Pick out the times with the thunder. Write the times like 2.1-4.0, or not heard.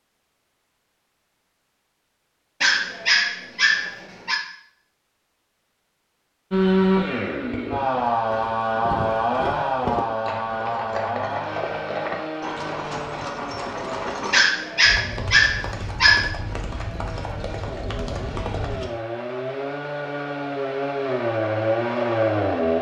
not heard.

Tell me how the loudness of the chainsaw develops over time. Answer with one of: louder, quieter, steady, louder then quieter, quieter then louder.
quieter then louder.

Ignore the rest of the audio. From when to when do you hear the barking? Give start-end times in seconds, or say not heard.
2.6-4.4, 14.3-16.3.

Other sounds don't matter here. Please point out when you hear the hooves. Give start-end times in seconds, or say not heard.
8.0-18.9.